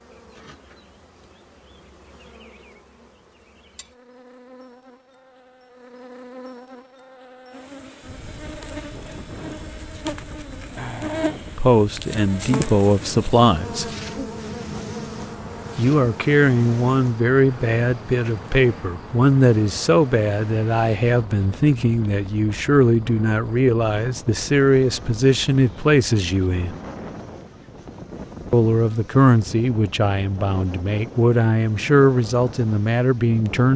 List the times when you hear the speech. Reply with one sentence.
The speech can be heard from 11.6 to 13.9 s, from 15.8 to 26.8 s and from 28.5 to 33.7 s.